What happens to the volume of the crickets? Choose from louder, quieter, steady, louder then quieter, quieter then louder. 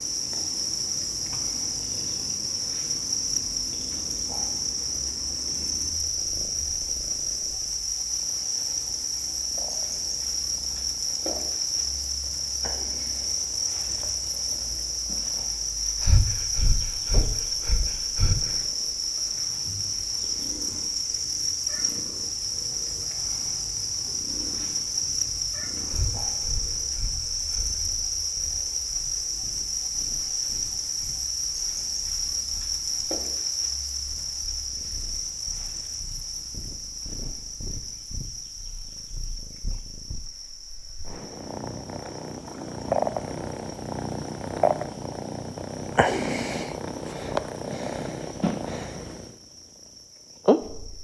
quieter.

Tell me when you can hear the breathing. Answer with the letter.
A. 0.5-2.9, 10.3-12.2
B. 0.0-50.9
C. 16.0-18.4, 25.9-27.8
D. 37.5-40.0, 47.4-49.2
C.